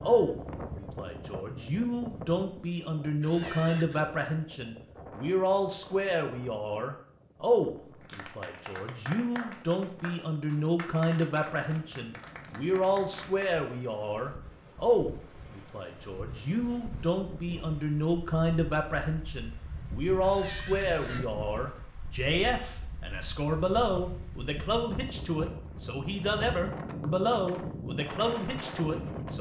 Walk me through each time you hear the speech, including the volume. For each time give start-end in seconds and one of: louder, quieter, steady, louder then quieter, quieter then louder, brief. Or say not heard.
0.0-29.3 steady.